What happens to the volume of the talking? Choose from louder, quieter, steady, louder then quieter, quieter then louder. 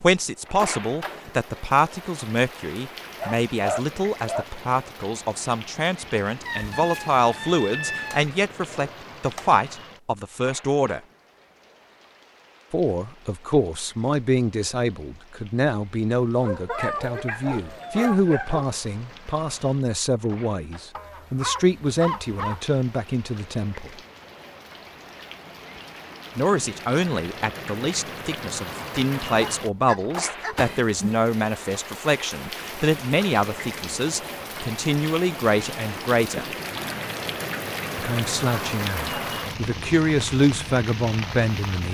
steady.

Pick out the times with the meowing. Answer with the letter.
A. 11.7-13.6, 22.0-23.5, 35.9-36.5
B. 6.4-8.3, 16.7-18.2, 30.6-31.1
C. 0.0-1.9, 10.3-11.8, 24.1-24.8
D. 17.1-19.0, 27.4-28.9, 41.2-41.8
B.